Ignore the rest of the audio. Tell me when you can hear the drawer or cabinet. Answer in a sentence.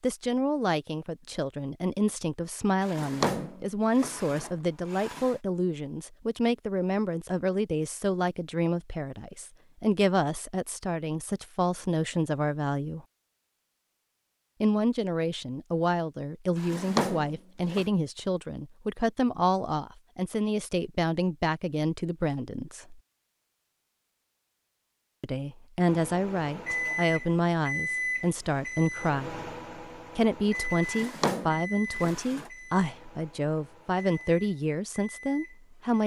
You can hear the drawer or cabinet from 2.8 to 5.3 s, from 16.6 to 17.9 s and from 30.8 to 32.5 s.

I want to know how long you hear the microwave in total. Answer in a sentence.
The microwave can be heard for 10 seconds in total.